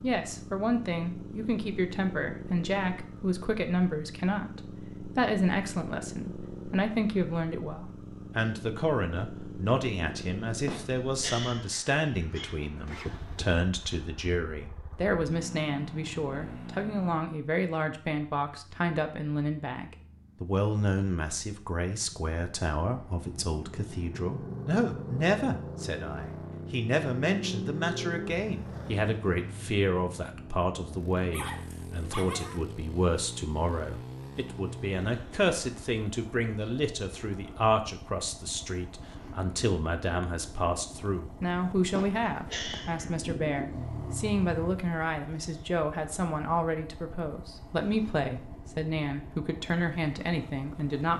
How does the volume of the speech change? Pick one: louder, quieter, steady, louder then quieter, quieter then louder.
steady.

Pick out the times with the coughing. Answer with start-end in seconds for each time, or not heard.
10.7-12.7, 42.0-43.0.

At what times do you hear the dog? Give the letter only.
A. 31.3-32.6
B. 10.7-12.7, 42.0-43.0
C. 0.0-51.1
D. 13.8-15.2
A.